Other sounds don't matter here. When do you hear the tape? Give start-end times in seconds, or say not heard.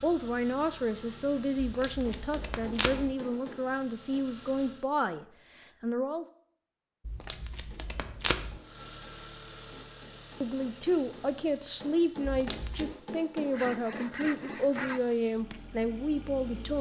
1.6-3.1, 7.0-8.6, 12.2-12.9.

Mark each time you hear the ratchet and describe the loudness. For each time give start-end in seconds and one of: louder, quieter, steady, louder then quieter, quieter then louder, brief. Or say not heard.
not heard.